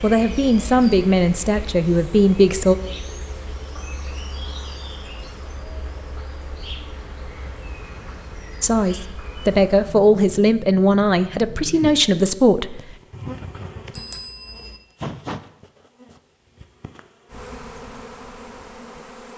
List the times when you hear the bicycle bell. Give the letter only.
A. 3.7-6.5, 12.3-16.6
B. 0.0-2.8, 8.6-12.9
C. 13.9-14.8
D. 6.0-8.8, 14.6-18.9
C.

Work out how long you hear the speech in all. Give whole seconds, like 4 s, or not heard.
7 s.